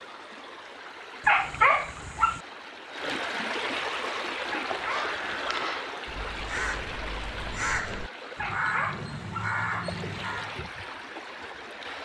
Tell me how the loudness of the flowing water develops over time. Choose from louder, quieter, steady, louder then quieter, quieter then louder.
louder then quieter.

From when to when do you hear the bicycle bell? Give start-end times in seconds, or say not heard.
not heard.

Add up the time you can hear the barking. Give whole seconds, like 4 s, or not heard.
4 s.